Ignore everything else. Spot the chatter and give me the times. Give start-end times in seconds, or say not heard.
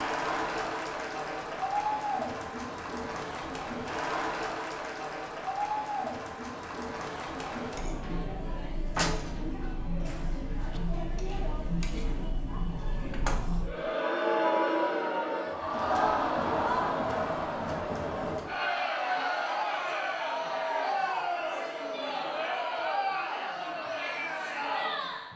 0.0-25.3.